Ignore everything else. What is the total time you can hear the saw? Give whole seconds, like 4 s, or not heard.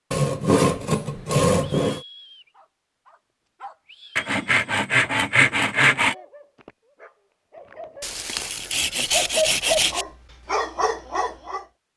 6 s.